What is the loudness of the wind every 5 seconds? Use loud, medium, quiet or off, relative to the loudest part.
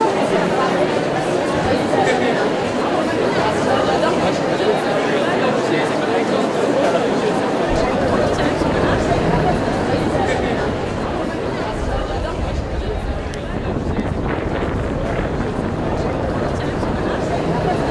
off, loud, loud, loud.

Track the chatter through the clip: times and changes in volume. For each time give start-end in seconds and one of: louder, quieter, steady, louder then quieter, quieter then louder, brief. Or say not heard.
0.0-17.8 quieter.